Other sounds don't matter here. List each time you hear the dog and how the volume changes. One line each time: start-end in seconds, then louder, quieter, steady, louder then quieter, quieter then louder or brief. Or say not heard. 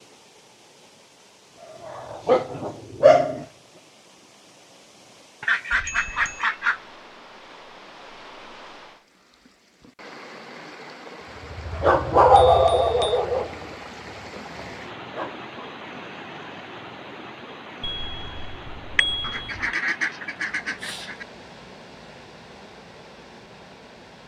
1.8-3.5 brief
11.3-15.7 quieter then louder.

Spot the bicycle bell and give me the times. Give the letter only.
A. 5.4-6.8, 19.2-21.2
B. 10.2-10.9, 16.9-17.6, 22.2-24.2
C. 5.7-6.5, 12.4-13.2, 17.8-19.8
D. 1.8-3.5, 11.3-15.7
C.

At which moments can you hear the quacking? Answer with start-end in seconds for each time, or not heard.
5.4-6.8, 19.2-21.2.